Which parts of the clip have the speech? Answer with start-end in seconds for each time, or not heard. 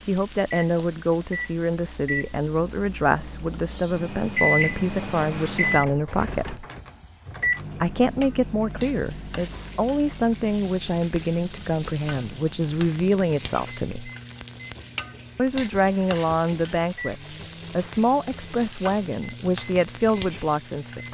0.1-6.7, 7.8-14.1, 15.3-21.0.